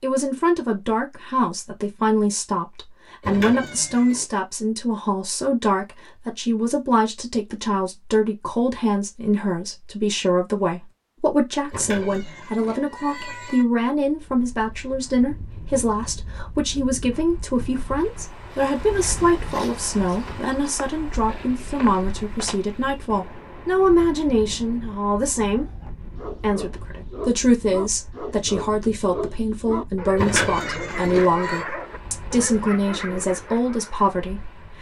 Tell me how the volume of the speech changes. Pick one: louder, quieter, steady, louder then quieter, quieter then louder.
steady.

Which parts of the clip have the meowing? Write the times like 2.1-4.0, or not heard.
3.2-4.2, 11.7-13.7, 30.1-31.6.